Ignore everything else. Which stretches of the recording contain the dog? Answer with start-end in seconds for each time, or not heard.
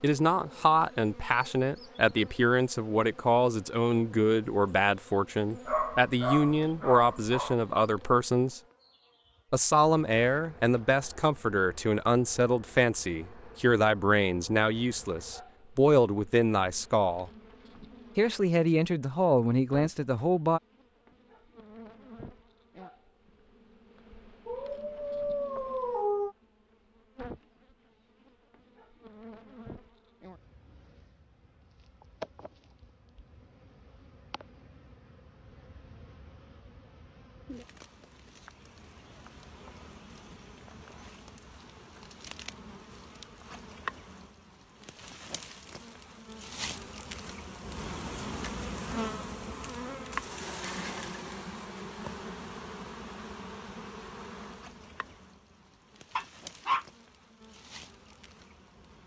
5.7-7.5, 24.4-26.4, 56.1-56.9.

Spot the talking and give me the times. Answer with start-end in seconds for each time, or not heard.
0.0-8.6, 9.5-17.3, 18.1-20.6.